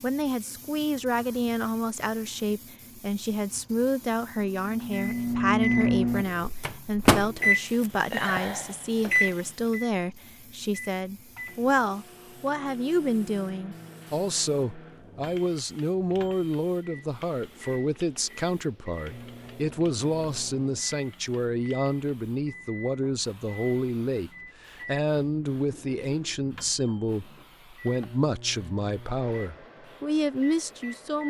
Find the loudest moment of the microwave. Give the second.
6 s.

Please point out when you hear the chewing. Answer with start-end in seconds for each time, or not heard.
not heard.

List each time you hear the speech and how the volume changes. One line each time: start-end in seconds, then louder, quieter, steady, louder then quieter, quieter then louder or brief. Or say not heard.
0.0-31.2 steady.